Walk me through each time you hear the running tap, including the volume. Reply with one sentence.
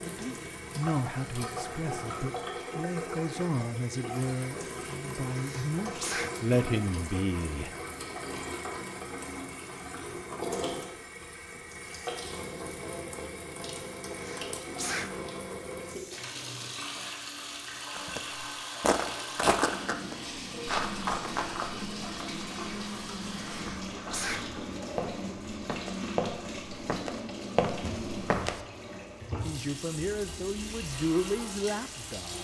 The running tap can be heard from 0.0 to 32.3 s, at a steady volume.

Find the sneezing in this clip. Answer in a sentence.
You can hear the sneezing from 5.3 to 6.4 s, from 14.1 to 15.2 s and from 23.5 to 24.5 s.